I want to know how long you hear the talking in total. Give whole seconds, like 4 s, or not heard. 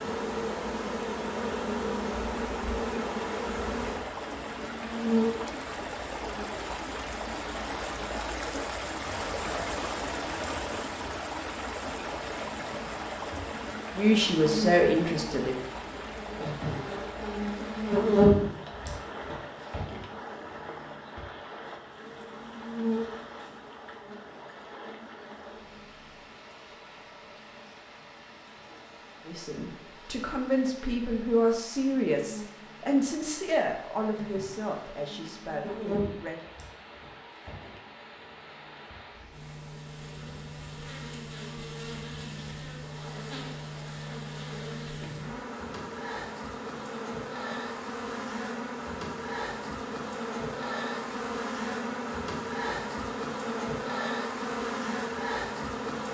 9 s.